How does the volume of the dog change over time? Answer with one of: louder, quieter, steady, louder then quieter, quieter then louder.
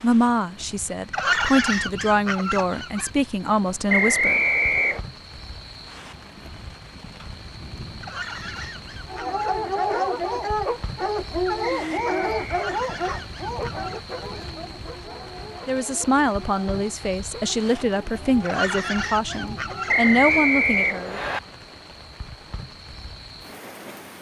quieter.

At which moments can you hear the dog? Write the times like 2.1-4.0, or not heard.
9.1-20.0.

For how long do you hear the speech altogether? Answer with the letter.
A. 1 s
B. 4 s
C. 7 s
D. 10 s
D.